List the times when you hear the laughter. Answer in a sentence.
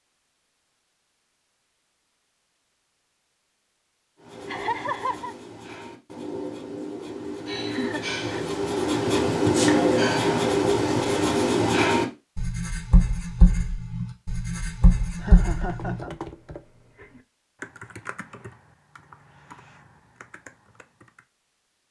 The laughter can be heard from 4.5 to 5.3 s, from 7.7 to 8.3 s and from 15.2 to 16.1 s.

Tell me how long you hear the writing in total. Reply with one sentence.
The writing can be heard for 12 seconds in total.